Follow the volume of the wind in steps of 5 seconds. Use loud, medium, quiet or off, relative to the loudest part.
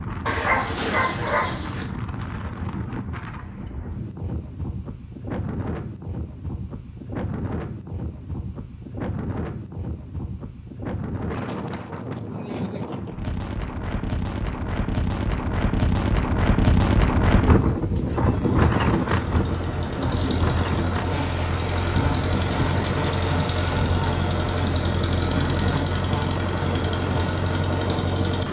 medium, medium, medium, loud, medium, medium.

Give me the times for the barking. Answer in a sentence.
You can hear the barking from 0.2 to 1.9 s.